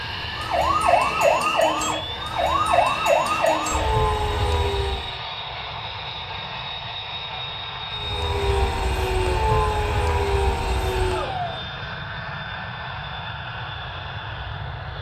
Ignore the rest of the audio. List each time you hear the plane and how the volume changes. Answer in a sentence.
You can hear the plane from 0.0 to 14.9 s, at a steady volume.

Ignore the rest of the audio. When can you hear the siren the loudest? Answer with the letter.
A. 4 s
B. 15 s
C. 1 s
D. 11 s
C.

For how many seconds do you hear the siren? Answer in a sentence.
You can hear the siren for 9 seconds altogether.